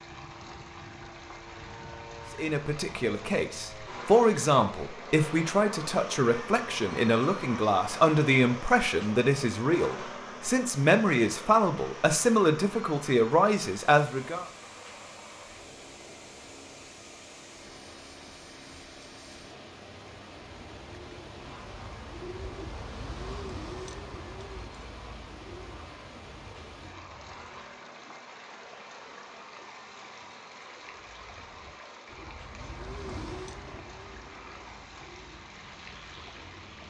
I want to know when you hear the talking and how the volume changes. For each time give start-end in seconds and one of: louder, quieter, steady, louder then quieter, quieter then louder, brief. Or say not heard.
2.4-14.4 steady.